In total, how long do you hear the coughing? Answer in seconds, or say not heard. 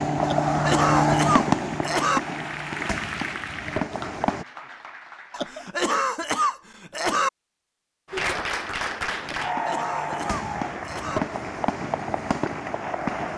6 s.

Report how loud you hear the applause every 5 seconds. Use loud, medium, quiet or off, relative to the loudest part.
medium, loud, medium.